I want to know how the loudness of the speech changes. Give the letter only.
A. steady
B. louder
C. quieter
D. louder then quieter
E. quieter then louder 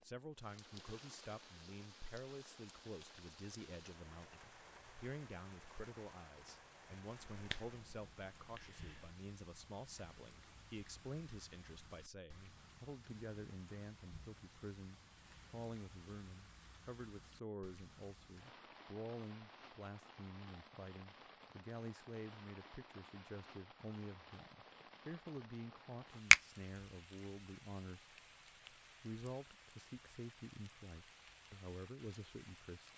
A.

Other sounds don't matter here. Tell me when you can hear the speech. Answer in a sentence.
You can hear the speech from 0.0 to 28.1 s and from 29.0 to 32.9 s.